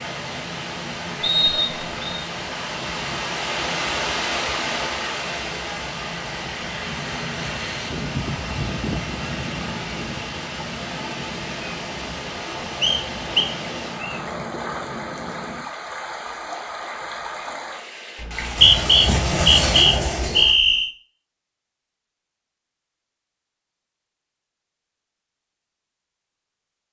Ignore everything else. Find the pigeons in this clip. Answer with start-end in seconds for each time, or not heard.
18.6-20.6.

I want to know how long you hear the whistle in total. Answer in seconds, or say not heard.
5 s.